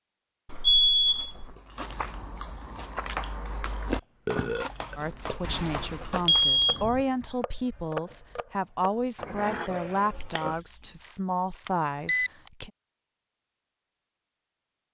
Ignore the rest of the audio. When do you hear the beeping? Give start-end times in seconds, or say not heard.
0.5-1.6, 5.4-7.0, 11.7-12.3.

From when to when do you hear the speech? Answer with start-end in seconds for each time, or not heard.
5.0-12.7.